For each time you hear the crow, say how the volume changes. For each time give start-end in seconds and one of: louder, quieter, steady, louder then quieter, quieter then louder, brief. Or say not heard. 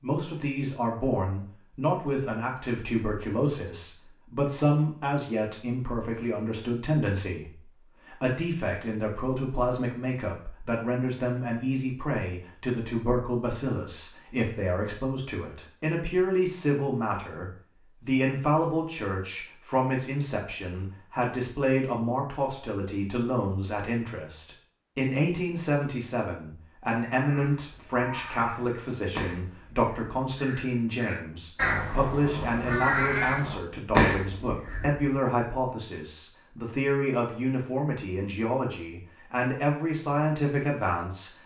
27.1-35.0 louder.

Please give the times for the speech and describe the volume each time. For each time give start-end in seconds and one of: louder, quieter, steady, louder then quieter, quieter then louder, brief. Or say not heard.
0.0-41.3 steady.